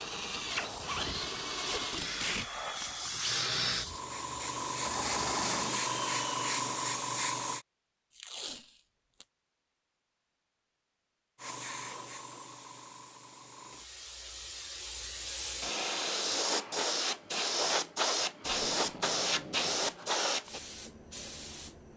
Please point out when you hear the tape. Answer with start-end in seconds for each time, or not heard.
1.6-2.5, 8.2-9.2, 18.4-20.0.